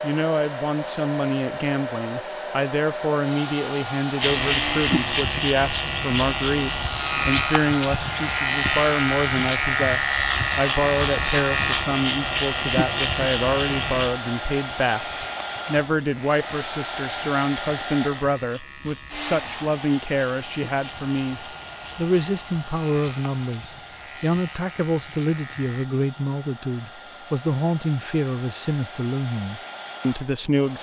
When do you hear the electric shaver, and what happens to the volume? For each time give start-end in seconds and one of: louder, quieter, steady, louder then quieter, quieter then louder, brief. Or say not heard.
4.2-25.9 quieter.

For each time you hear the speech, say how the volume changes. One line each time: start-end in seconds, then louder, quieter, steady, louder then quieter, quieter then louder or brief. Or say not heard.
0.0-30.7 steady.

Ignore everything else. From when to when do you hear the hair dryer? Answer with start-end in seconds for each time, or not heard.
0.0-30.7.